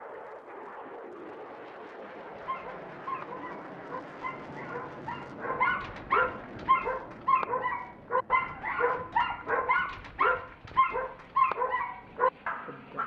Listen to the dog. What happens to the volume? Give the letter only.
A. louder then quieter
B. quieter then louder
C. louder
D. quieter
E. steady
C.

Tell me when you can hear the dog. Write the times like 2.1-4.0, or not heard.
2.4-13.0.